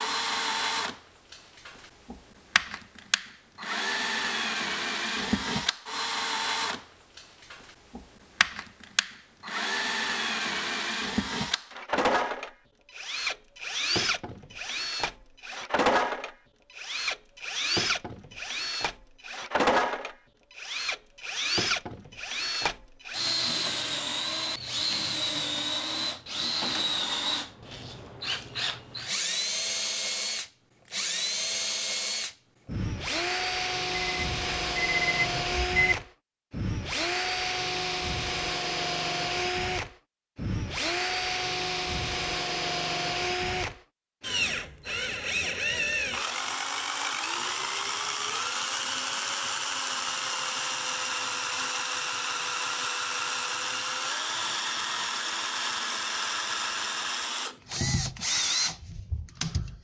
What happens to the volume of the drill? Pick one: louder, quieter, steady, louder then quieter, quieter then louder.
steady.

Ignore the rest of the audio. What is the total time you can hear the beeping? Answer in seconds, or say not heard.
2 s.